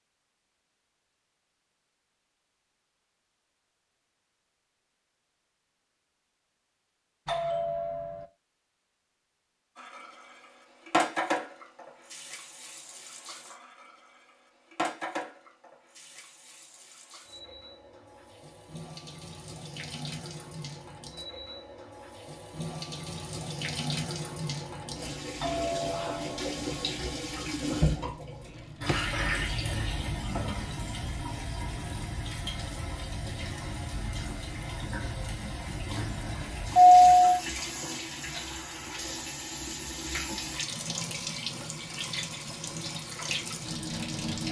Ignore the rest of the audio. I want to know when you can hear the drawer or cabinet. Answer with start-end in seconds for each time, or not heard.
28.6-29.1.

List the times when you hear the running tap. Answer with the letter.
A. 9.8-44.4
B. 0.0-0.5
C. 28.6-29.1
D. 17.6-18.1
A.